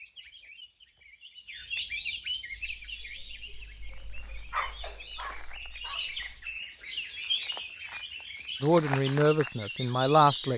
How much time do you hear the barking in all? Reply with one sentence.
The barking can be heard for 4 seconds in total.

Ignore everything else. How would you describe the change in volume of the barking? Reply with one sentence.
The volume of the barking goes up, then down.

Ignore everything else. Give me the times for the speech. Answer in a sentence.
You can hear the speech from 8.6 to 10.5 s.